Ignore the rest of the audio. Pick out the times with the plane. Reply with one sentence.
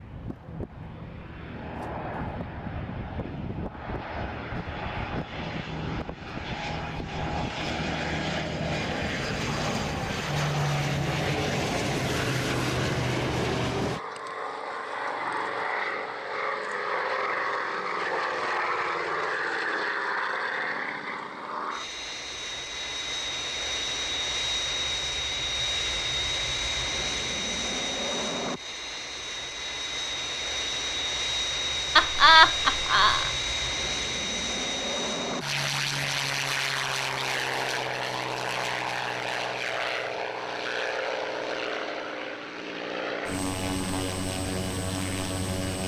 You can hear the plane from 0.0 to 45.8 s.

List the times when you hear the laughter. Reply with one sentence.
The laughter can be heard from 31.9 to 33.3 s.